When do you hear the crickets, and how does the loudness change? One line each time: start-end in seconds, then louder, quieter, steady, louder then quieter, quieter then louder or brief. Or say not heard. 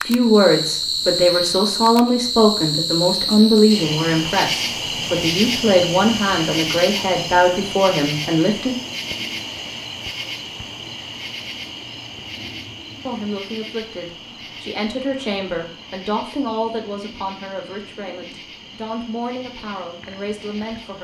0.0-21.0 quieter.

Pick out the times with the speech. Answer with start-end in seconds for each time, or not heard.
0.1-8.8, 13.1-21.0.